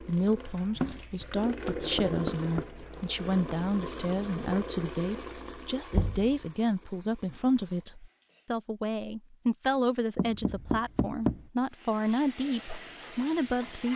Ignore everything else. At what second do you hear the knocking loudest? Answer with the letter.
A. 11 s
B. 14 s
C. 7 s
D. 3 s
A.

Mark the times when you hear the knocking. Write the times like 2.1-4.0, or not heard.
1.6-2.6, 5.9-6.5, 10.2-11.4.